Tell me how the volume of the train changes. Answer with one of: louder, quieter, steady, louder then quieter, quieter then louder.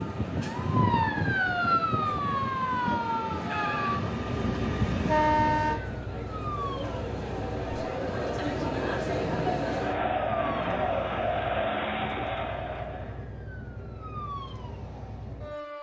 quieter then louder.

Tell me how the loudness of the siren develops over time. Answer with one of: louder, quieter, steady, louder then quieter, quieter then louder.
quieter.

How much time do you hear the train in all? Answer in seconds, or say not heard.
6 s.